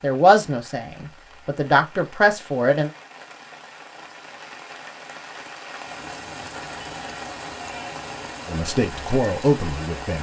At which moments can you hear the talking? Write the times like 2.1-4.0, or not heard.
0.0-2.9, 8.4-10.1.